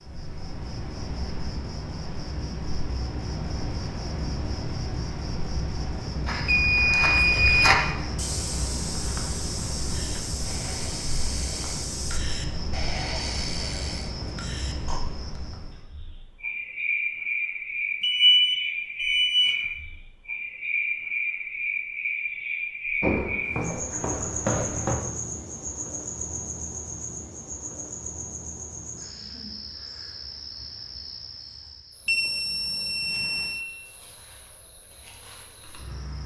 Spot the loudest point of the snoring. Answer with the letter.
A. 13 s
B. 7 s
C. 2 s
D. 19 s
A.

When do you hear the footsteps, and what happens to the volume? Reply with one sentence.
You can hear the footsteps from 6.2 to 12.2 s, getting quieter; and briefly from 23.0 to 24.9 s.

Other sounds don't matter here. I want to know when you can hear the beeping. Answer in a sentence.
The beeping can be heard from 6.5 to 7.8 s, from 18.0 to 19.6 s and from 32.0 to 33.6 s.